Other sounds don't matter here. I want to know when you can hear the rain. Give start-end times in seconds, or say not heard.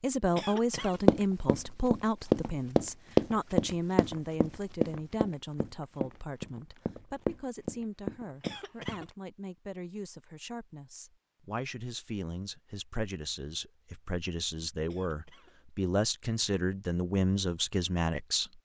not heard.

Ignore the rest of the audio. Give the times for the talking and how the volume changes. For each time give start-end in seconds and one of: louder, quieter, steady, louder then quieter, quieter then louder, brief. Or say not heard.
0.0-18.5 quieter then louder.